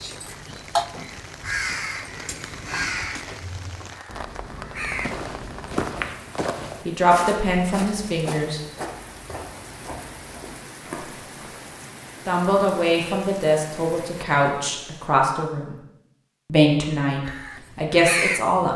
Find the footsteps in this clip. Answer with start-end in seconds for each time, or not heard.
4.8-11.6.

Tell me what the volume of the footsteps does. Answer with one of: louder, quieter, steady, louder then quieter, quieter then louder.
quieter.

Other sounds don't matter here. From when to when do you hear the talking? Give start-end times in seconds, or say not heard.
6.8-8.6, 12.2-15.8, 16.5-18.7.